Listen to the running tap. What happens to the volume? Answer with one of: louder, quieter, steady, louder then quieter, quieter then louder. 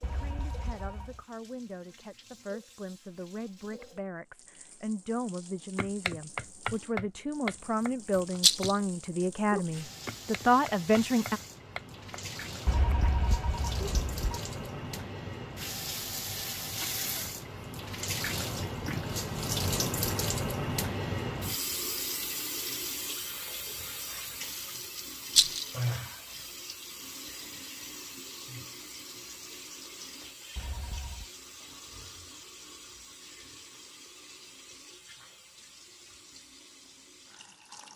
louder then quieter.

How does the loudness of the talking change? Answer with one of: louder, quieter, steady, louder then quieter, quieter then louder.
louder.